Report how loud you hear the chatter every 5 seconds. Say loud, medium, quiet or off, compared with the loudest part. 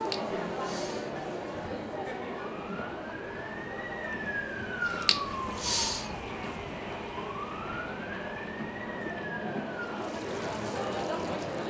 loud, medium, loud.